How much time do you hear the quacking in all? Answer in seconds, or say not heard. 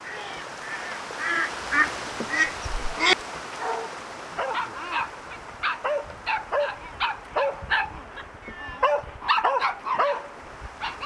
3 s.